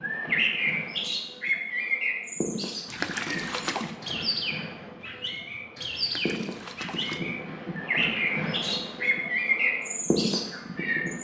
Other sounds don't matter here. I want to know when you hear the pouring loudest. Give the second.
3 s.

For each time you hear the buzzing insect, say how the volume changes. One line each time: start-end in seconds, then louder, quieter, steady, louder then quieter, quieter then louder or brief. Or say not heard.
0.0-11.1 louder.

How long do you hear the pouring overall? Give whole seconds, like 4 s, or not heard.
2 s.